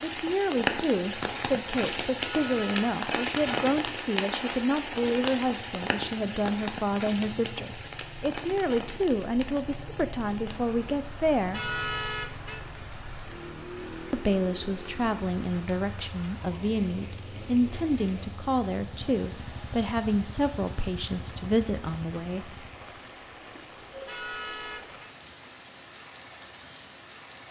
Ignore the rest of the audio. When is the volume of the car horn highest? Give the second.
12 s.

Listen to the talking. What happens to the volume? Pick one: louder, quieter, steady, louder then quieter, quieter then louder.
steady.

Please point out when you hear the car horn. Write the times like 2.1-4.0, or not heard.
2.1-3.7, 11.5-12.7, 24.1-25.1.